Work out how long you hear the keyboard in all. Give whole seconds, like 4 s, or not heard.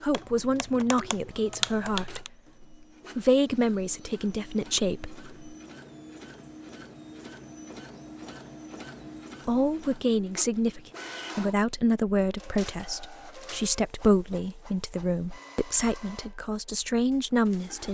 2 s.